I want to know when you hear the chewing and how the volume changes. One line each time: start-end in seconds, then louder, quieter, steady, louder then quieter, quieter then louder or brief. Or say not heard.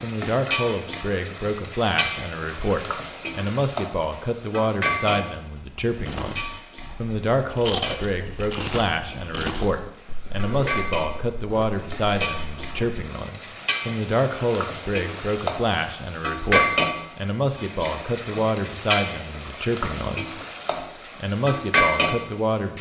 5.5-13.0 louder then quieter.